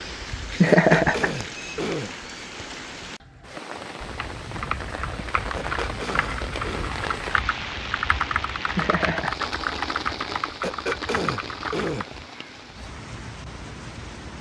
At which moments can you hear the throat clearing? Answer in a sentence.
The throat clearing can be heard from 0.7 to 2.1 s, from 5.5 to 7.0 s and from 10.6 to 12.1 s.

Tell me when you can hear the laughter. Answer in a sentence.
The laughter can be heard from 0.5 to 1.3 s and from 8.7 to 9.4 s.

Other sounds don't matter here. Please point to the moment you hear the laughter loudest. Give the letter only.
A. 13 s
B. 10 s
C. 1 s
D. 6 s
C.